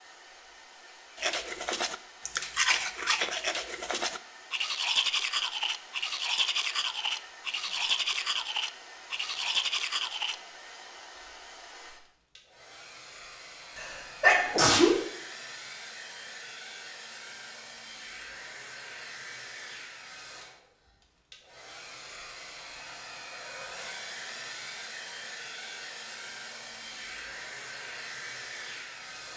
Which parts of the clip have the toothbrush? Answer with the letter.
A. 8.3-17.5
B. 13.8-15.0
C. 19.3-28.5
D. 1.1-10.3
D.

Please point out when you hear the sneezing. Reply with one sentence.
You can hear the sneezing from 13.8 to 15.0 s.